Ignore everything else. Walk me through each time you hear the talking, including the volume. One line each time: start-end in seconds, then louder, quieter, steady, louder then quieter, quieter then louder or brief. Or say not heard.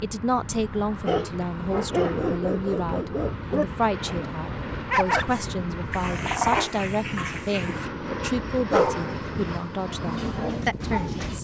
0.0-11.3 steady.